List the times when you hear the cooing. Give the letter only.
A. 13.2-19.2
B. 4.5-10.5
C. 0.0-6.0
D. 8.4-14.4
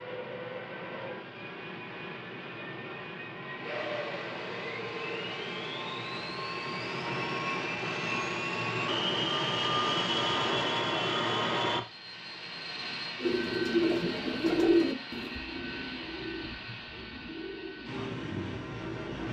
A.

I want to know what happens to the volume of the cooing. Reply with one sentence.
The loudness of the cooing goes down.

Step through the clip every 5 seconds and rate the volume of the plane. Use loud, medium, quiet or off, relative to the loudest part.
medium, loud, loud, medium.